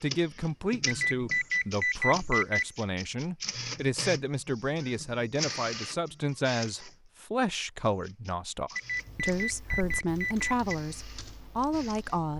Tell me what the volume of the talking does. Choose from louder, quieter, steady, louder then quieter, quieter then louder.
steady.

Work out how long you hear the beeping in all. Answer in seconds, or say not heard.
4 s.